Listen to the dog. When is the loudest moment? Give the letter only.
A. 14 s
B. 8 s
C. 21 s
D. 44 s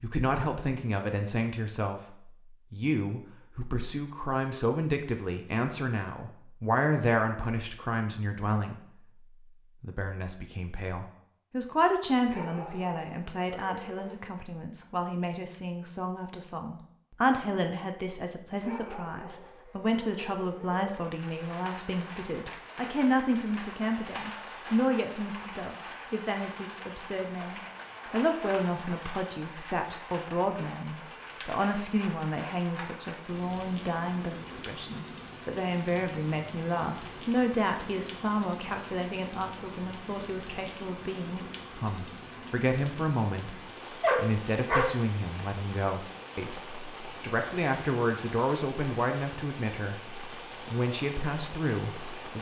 D.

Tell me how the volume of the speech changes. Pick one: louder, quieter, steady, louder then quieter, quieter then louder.
steady.